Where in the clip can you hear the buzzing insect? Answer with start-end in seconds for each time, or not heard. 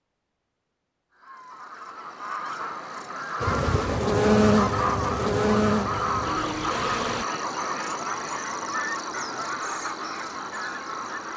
3.4-7.2.